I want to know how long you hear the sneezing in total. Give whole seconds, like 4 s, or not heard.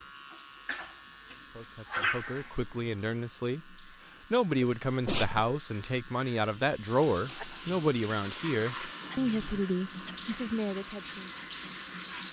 4 s.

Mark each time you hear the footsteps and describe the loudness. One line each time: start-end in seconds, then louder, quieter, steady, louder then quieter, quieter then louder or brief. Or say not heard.
not heard.